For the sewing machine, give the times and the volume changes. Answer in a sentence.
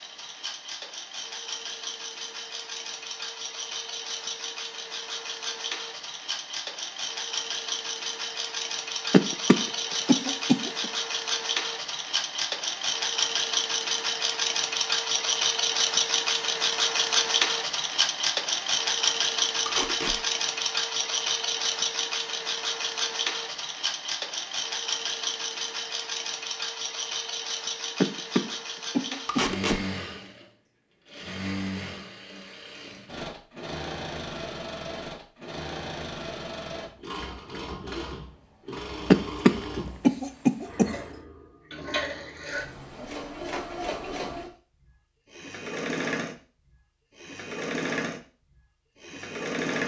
You can hear the sewing machine from 0.0 to 49.8 s, getting louder then quieter.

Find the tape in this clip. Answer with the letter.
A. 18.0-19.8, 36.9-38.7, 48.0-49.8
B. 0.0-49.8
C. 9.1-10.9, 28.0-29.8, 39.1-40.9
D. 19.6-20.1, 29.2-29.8
D.